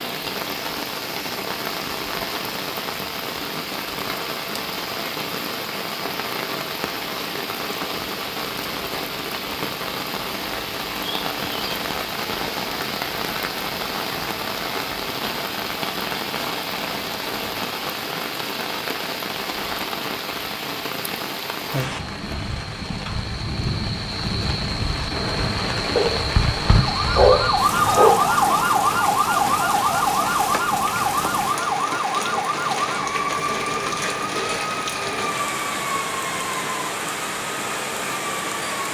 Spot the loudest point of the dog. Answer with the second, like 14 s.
27 s.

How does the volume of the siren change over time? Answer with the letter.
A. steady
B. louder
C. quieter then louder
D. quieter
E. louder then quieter
D.